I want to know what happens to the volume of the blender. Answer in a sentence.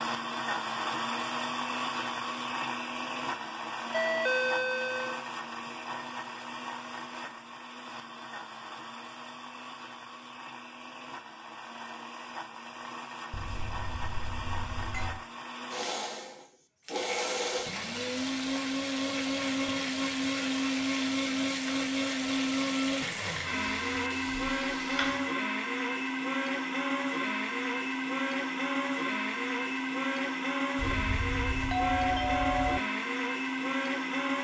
The volume of the blender goes down, then up.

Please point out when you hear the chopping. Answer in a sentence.
You can't hear the chopping here.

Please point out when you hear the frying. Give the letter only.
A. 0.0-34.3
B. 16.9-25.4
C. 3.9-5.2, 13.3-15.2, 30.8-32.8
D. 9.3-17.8
B.